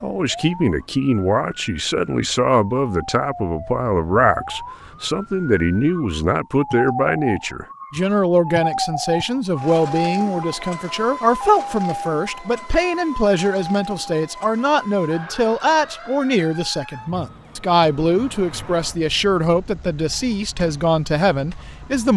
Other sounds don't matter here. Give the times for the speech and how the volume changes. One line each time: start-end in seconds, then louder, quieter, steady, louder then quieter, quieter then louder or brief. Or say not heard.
0.0-22.1 steady.